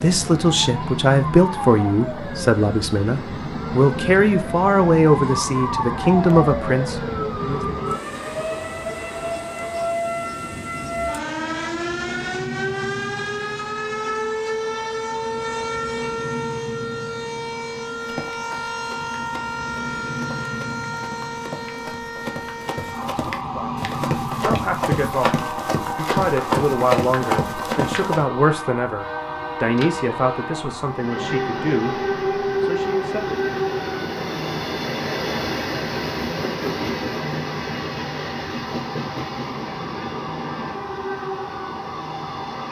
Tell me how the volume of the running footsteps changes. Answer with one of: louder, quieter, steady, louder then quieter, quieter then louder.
louder.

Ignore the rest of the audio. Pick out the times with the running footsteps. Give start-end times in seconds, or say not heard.
18.0-28.2.